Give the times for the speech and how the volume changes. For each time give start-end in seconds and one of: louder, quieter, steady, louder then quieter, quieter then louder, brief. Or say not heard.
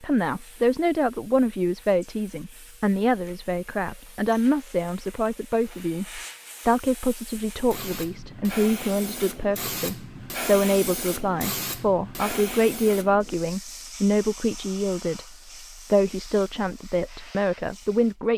0.0-18.3 steady.